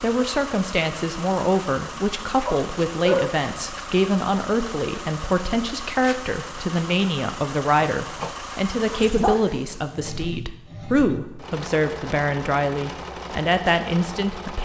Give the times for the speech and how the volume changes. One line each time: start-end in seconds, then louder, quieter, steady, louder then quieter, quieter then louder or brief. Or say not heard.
0.0-14.5 steady.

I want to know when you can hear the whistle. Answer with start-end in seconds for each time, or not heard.
not heard.